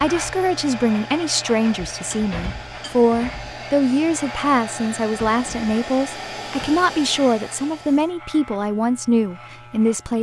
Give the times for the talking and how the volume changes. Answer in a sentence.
The talking can be heard from 0.0 to 10.1 s, at a steady volume.